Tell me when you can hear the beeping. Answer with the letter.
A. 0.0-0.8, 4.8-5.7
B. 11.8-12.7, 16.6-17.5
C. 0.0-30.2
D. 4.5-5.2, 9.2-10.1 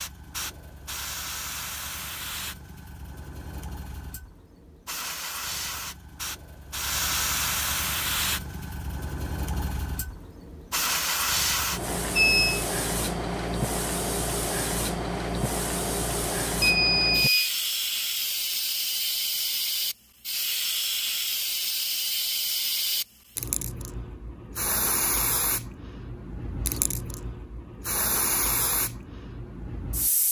B.